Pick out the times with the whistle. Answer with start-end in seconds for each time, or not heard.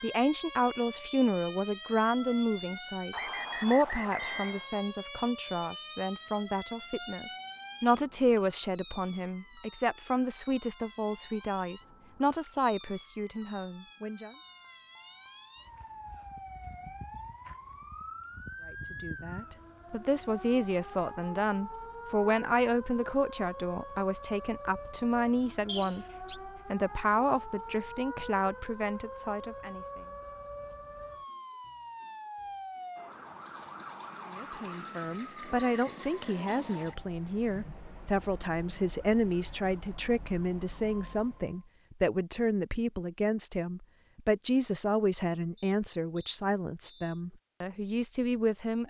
3.1-4.7, 25.6-26.4, 45.5-47.2.